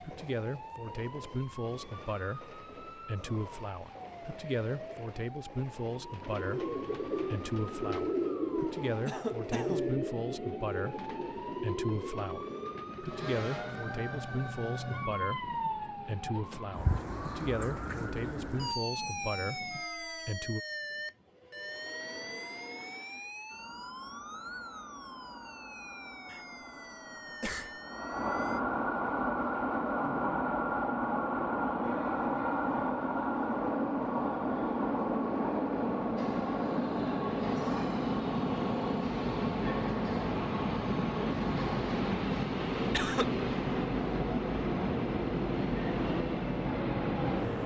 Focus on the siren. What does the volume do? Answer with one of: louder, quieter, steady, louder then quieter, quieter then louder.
louder then quieter.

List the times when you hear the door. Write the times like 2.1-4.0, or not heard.
not heard.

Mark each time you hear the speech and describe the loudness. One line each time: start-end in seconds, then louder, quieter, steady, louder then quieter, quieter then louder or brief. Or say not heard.
0.0-20.6 steady.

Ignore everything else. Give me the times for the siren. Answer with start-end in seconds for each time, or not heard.
0.0-28.6.